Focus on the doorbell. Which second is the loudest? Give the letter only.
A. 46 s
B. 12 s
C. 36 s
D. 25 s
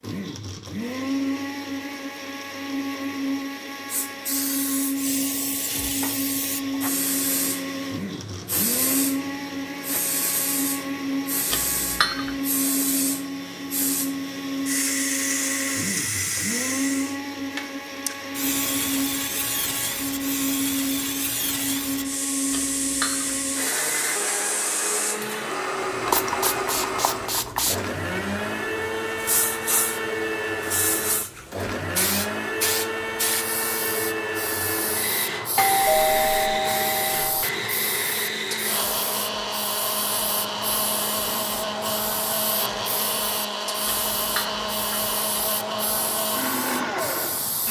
C.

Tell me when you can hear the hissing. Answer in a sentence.
The hissing can be heard from 3.9 to 47.6 s.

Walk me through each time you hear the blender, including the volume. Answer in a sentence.
The blender can be heard from 0.0 to 47.6 s, at a steady volume.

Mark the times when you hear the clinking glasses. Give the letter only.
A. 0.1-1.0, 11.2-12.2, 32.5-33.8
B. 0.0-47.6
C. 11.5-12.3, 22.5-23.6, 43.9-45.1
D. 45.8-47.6
C.